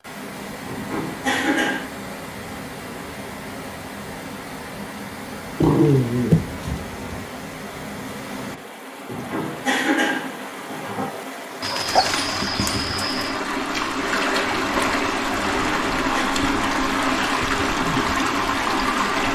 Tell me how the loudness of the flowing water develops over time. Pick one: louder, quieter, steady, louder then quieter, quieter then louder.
louder.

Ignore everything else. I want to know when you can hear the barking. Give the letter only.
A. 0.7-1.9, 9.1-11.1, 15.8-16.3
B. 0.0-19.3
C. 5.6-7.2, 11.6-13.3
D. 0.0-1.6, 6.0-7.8
C.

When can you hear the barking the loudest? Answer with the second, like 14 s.
6 s.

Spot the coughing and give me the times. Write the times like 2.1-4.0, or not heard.
0.7-1.9, 9.1-11.1, 15.8-16.3.